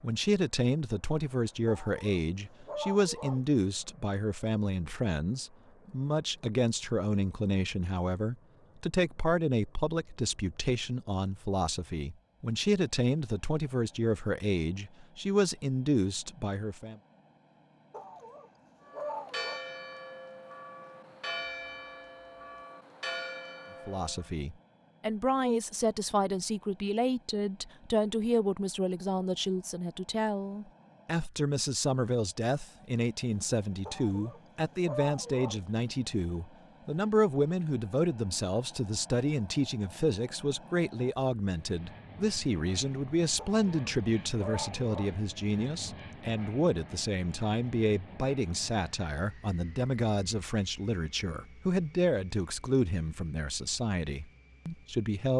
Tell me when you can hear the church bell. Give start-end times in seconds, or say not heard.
18.8-24.3.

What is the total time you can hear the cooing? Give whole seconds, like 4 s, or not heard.
not heard.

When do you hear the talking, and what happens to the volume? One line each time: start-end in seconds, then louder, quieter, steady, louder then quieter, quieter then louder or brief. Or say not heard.
0.0-17.0 steady
23.9-55.3 steady.